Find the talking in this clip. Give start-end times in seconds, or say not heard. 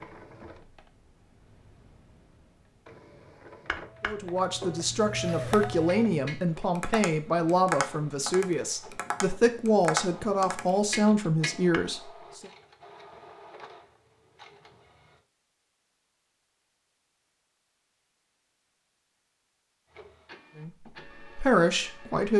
4.0-12.5, 20.6-22.3.